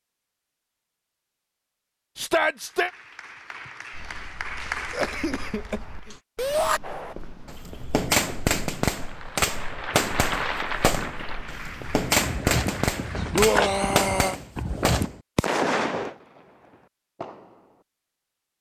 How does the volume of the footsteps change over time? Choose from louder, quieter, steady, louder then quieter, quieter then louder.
louder.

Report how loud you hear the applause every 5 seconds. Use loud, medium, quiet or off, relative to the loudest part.
loud, medium, loud, off.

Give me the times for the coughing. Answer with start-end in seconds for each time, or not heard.
4.9-6.2.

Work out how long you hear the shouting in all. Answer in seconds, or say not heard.
2 s.